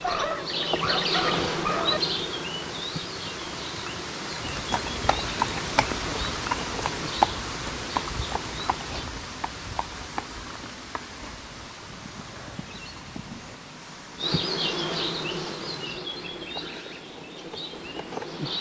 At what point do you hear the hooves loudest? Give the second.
7 s.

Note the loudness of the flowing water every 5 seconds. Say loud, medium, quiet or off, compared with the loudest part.
loud, loud, medium, medium.